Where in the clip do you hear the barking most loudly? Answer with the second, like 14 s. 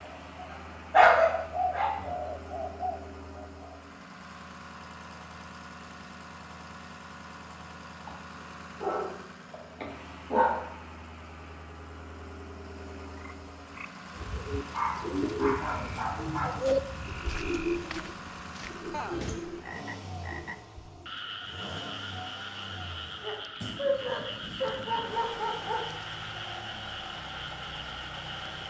1 s.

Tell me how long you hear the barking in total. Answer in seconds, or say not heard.
7 s.